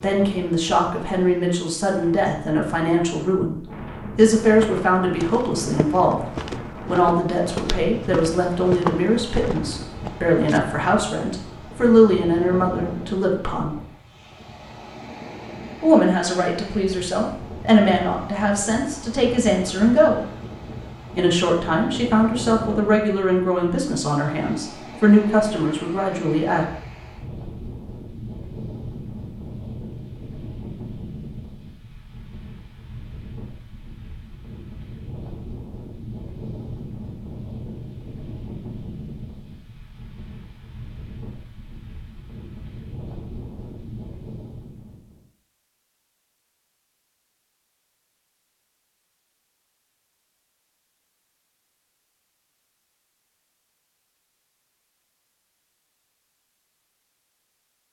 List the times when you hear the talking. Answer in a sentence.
You can hear the talking from 0.0 to 6.2 s, from 6.8 to 13.8 s, from 15.8 to 20.2 s and from 21.1 to 26.6 s.